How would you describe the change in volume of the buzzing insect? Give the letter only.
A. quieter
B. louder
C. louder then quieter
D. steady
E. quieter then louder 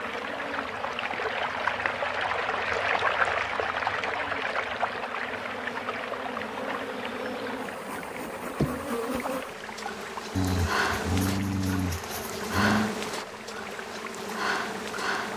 B.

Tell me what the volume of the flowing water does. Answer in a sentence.
The loudness of the flowing water goes down.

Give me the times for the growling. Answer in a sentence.
The growling can be heard from 10.3 to 12.9 s.